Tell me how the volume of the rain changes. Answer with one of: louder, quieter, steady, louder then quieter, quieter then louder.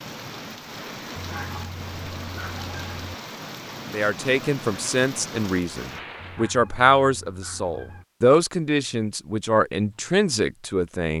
steady.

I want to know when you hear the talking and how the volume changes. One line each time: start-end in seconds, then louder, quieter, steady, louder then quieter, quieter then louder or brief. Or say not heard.
3.9-11.1 steady.